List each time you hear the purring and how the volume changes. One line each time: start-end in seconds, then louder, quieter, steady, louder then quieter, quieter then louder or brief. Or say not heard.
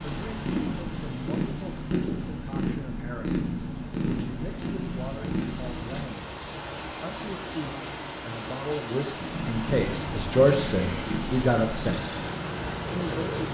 0.0-6.0 steady
9.2-13.4 steady.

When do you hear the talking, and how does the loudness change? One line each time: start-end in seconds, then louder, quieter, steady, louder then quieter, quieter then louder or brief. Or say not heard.
0.0-12.2 louder
12.9-13.4 brief.